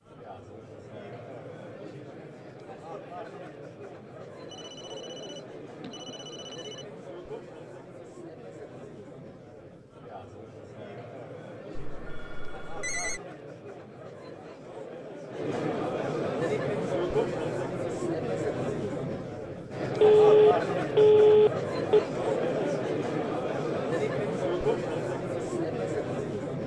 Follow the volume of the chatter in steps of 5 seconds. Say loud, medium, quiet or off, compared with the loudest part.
quiet, quiet, quiet, loud, loud, loud.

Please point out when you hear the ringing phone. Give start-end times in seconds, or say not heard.
4.5-6.8, 11.8-13.2, 20.0-22.0.